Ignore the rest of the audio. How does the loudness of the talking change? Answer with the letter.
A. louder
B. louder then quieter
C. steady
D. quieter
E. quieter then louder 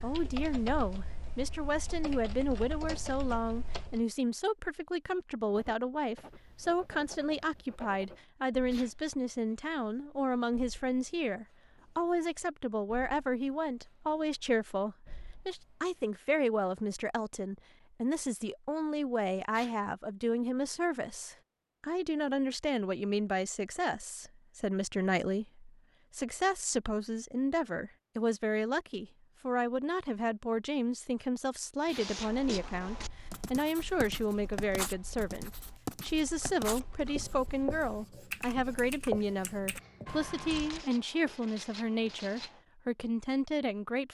C.